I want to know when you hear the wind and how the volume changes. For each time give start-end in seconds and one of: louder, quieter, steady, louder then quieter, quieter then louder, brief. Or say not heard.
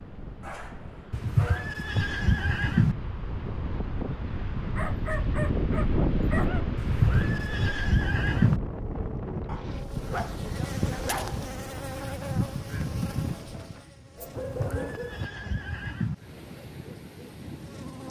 0.0-18.0 louder then quieter.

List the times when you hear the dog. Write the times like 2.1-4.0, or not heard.
0.4-1.8, 4.8-6.7, 9.4-11.4, 14.2-15.2.